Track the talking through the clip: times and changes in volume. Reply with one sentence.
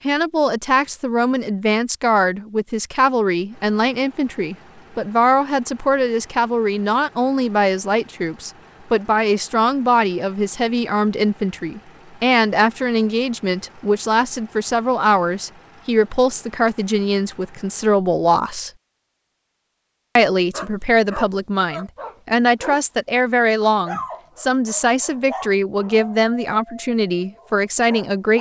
The talking can be heard from 0.1 to 18.7 s, at a steady volume; and from 20.1 to 28.3 s, at a steady volume.